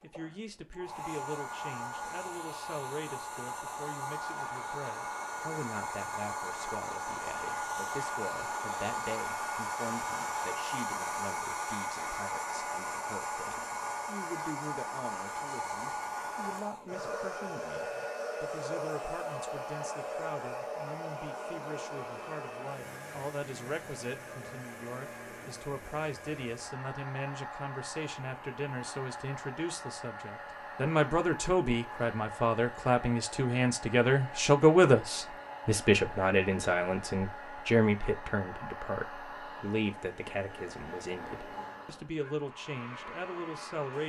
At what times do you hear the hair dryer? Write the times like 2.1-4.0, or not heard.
0.0-44.0.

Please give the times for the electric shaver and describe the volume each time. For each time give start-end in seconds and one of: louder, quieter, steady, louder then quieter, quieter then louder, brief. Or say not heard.
not heard.